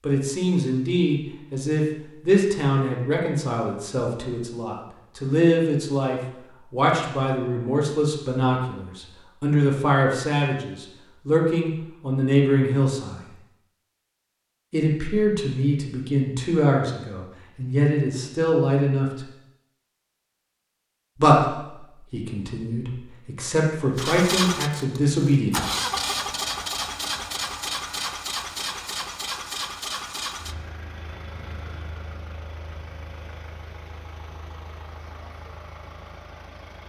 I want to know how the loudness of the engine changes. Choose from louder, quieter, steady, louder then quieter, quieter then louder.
quieter.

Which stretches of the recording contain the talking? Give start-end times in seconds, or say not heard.
0.0-13.2, 14.7-19.2, 21.1-25.5.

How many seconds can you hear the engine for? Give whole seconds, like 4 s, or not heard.
13 s.